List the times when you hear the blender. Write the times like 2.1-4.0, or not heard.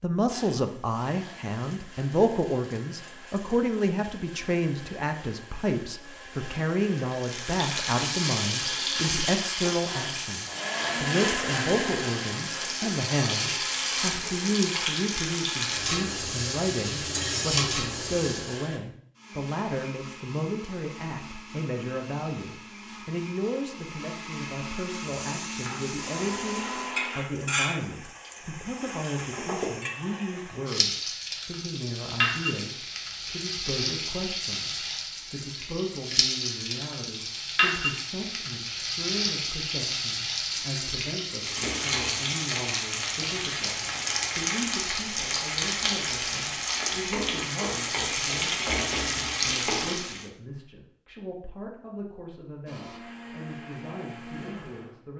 0.2-27.2, 52.6-55.1.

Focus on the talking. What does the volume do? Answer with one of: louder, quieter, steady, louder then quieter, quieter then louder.
quieter.